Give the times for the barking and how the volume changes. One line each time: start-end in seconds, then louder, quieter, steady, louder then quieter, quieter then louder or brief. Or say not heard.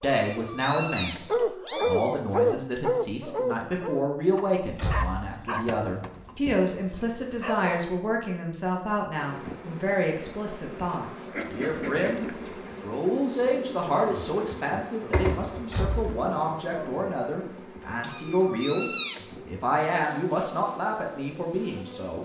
1.3-8.0 quieter.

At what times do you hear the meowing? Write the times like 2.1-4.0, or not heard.
0.0-2.4, 18.0-19.5.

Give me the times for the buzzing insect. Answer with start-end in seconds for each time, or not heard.
9.2-22.2.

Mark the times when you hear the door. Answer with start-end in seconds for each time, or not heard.
4.8-5.3, 15.7-16.2.